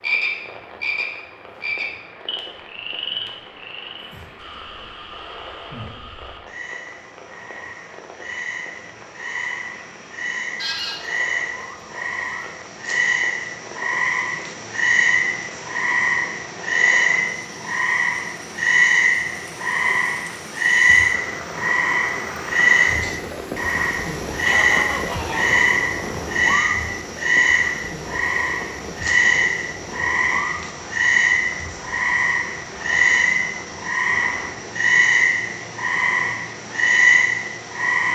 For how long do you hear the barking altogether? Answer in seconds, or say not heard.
not heard.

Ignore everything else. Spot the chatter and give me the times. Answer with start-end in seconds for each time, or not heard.
not heard.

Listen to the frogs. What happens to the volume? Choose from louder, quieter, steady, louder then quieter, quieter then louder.
louder.